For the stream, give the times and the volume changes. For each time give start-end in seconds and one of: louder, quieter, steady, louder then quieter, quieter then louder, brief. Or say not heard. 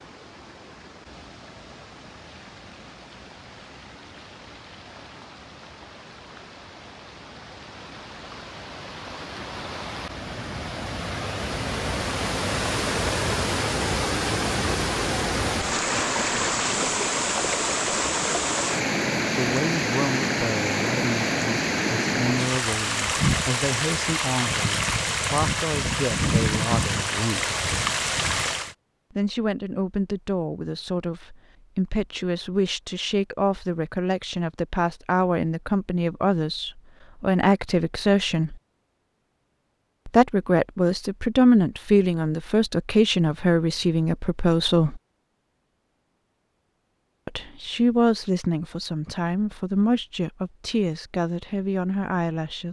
0.0-28.8 louder.